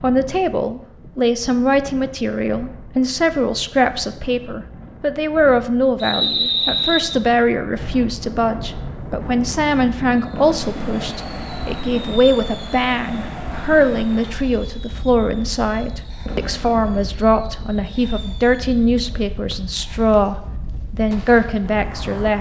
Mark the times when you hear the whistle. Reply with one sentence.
You can hear the whistle from 6.0 to 7.2 s.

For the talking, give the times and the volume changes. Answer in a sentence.
You can hear the talking from 0.0 to 22.3 s, at a steady volume.